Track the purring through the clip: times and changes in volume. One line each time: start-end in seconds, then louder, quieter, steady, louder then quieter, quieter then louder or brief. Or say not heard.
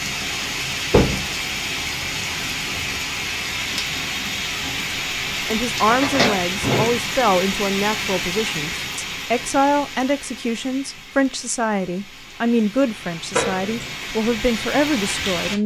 not heard.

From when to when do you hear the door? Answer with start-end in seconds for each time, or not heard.
0.9-1.3, 5.8-7.0, 13.3-13.9.